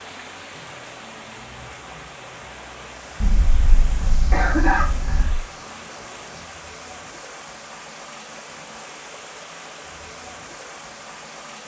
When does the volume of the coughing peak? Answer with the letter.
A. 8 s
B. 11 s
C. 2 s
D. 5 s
D.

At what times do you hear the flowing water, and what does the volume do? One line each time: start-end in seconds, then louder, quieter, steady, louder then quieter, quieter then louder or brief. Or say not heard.
0.0-11.6 steady.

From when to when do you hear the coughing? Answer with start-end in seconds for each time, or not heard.
3.2-5.4.